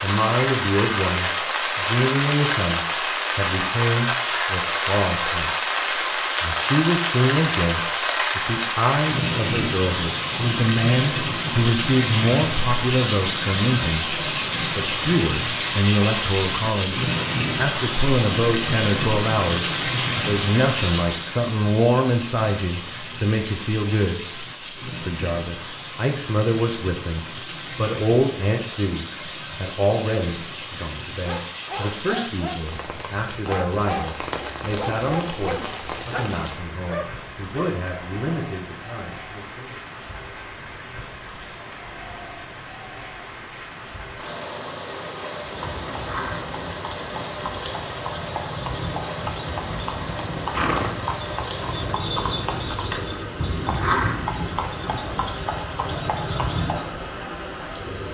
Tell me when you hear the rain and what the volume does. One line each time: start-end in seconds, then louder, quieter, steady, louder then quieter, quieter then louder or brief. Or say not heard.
0.0-58.0 quieter.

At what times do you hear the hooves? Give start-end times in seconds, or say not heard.
45.5-57.0.